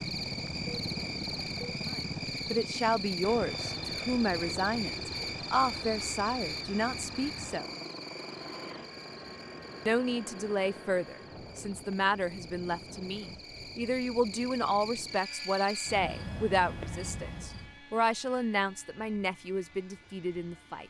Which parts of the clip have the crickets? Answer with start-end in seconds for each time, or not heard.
0.0-17.8.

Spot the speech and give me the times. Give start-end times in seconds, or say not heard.
1.9-7.8, 9.8-20.8.